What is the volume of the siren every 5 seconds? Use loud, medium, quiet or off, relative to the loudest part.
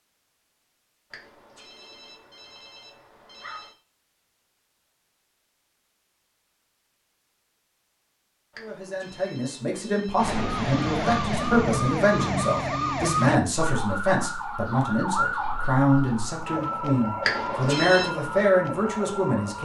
off, off, loud, loud.